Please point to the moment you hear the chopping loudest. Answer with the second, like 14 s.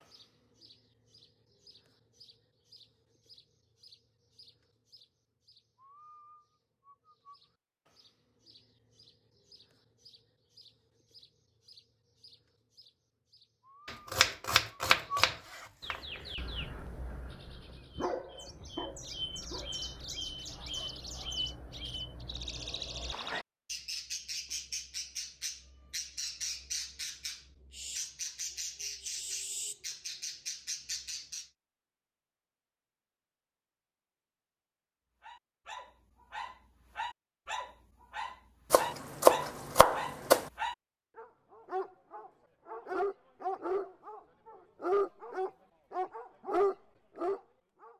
39 s.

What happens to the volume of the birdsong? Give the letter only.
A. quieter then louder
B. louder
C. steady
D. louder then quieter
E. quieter
B.